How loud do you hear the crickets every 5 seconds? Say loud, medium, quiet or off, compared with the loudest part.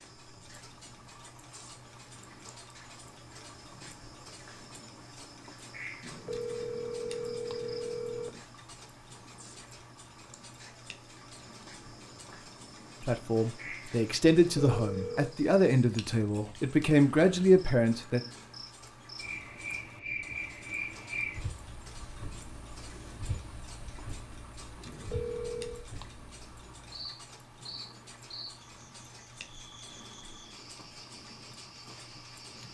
quiet, medium, medium, loud, loud, medium, medium.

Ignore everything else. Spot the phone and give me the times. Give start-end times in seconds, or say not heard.
6.0-8.4, 14.3-15.3, 24.9-25.9.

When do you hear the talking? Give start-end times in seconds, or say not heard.
13.0-18.2.